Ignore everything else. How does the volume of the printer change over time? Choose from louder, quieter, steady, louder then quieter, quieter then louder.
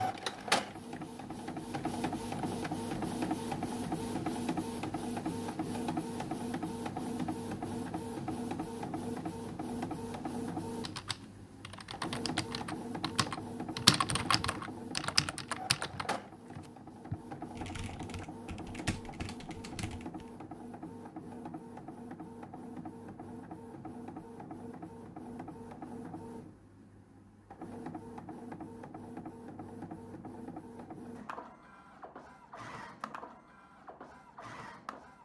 quieter.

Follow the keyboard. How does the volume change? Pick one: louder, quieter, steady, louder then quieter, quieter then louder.
louder then quieter.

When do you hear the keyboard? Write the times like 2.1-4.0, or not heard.
10.8-20.3.